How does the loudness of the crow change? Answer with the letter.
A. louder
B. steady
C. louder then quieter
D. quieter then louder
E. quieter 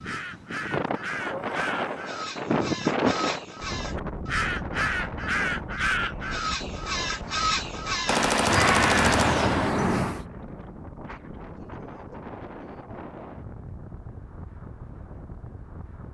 A.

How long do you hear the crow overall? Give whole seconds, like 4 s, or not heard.
10 s.